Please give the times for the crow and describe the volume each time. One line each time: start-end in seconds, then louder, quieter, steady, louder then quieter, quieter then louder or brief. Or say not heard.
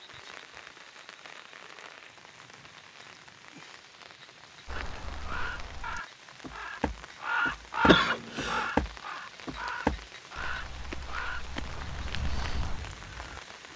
4.7-13.4 louder then quieter.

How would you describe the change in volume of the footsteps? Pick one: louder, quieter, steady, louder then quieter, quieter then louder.
louder then quieter.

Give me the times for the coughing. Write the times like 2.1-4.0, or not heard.
7.8-8.7.